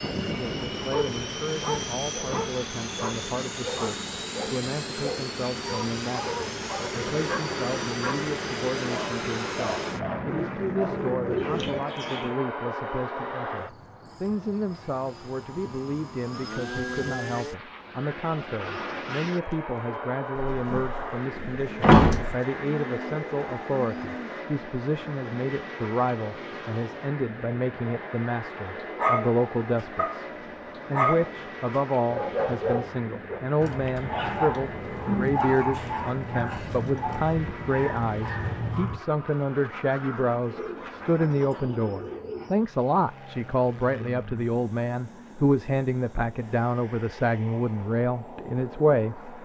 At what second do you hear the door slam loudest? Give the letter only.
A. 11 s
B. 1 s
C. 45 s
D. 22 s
D.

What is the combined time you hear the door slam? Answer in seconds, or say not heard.
2 s.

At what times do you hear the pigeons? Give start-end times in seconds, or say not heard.
10.2-12.3, 21.6-24.4, 40.5-42.5.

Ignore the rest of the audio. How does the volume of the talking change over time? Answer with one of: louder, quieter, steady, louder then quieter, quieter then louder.
louder.